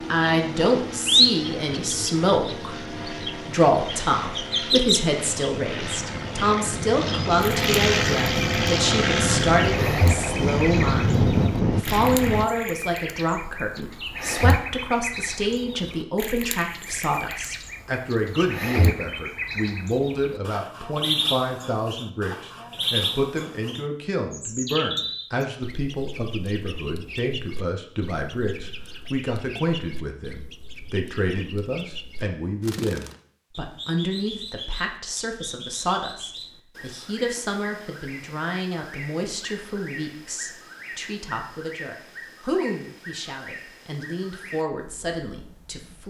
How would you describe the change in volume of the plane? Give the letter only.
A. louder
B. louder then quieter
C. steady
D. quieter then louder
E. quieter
A.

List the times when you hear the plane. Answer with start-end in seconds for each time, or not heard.
0.0-12.4.